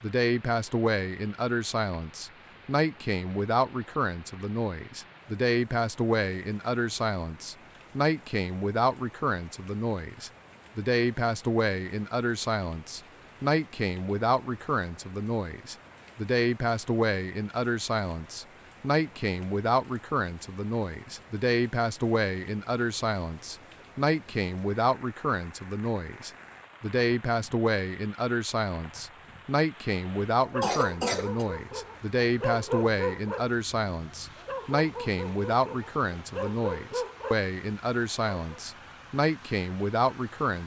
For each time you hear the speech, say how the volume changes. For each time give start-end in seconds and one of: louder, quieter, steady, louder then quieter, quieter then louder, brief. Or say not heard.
0.0-40.6 steady.